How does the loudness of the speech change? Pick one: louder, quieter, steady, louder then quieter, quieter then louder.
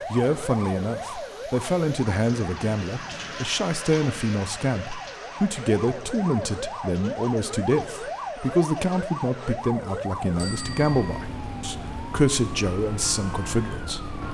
steady.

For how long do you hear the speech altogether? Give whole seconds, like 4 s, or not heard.
14 s.